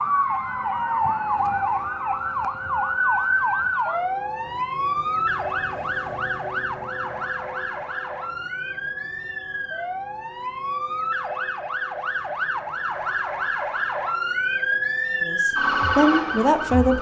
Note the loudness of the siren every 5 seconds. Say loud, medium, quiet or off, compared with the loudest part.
loud, medium, loud, loud.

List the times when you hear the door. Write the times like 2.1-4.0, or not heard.
not heard.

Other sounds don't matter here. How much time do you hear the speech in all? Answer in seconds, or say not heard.
2 s.